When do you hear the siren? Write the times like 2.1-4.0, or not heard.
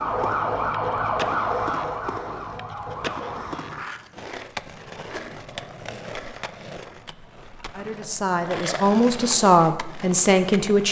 0.0-3.6.